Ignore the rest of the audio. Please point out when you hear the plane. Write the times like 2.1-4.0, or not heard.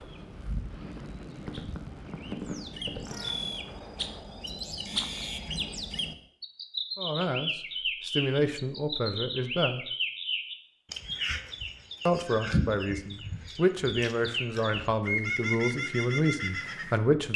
0.0-3.8.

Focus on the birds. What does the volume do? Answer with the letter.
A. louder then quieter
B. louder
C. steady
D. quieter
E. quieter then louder
B.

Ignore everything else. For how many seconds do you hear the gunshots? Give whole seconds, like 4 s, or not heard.
2 s.